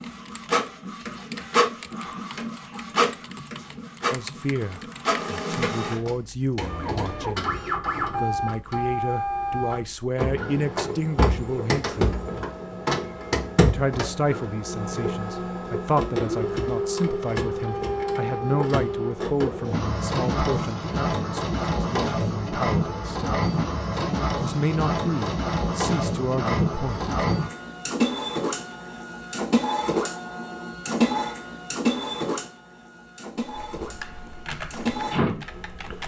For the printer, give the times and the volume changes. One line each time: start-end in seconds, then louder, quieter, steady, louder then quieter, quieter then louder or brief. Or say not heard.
0.0-36.0 steady.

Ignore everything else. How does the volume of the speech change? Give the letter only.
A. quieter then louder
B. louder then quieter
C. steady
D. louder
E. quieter
C.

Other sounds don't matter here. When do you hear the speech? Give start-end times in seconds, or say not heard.
4.1-12.2, 13.7-23.4, 24.4-27.4.